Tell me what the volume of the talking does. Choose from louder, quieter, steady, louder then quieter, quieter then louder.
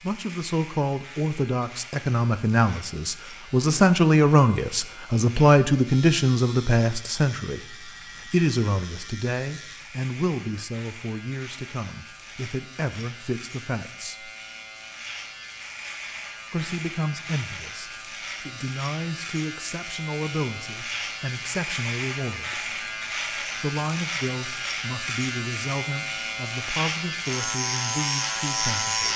quieter.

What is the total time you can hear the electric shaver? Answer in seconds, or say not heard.
29 s.